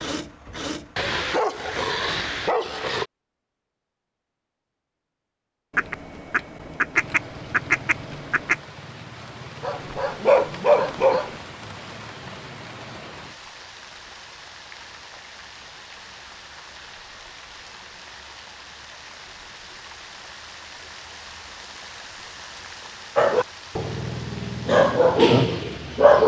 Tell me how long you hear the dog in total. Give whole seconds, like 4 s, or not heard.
8 s.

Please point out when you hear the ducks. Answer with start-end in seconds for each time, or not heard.
5.7-8.6.